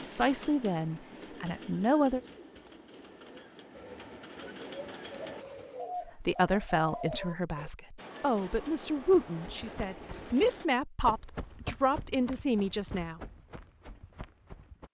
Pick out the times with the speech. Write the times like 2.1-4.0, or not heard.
0.0-2.2, 6.0-13.2.